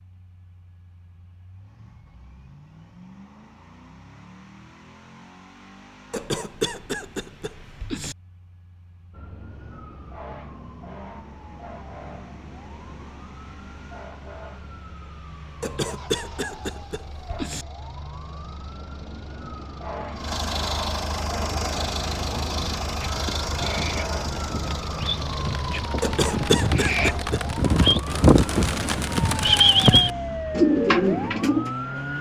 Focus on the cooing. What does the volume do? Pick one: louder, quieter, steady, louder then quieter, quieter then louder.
louder.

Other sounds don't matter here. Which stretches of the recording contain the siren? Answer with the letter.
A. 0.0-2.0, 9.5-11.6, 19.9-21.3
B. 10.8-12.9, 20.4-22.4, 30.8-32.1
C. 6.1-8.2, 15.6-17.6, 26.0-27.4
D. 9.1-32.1
D.